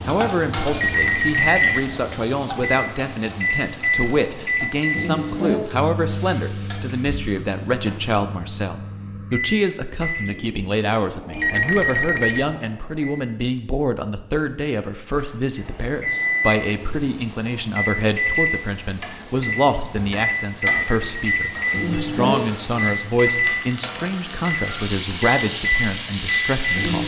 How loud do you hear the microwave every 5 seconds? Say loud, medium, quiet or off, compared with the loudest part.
loud, medium, medium, loud, loud, loud.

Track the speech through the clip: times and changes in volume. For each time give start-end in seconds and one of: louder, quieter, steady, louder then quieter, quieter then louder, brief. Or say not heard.
0.1-27.0 steady.